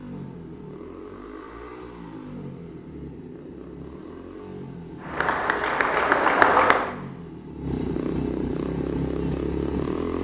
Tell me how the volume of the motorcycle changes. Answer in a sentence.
The loudness of the motorcycle goes up.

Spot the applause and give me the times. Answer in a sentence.
The applause can be heard from 5.0 to 7.0 s.